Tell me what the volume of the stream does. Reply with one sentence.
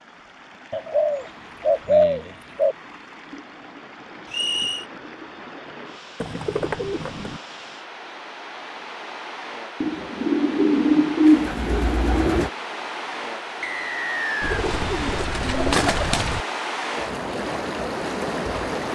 The loudness of the stream goes up.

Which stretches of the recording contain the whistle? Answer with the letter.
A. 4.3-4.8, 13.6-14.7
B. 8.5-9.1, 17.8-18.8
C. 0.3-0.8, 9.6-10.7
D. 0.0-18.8
A.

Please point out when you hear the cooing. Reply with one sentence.
The cooing can be heard from 0.7 to 2.8 s, from 6.2 to 7.4 s, from 9.8 to 12.5 s and from 14.4 to 16.4 s.